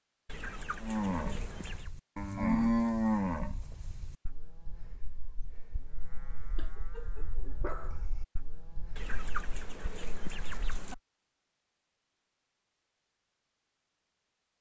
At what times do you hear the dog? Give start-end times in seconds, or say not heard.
6.5-8.0.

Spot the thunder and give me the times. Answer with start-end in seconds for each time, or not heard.
not heard.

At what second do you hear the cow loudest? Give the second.
3 s.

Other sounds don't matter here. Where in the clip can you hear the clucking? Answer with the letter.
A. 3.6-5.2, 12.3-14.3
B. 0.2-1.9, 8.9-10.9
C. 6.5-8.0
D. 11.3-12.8
B.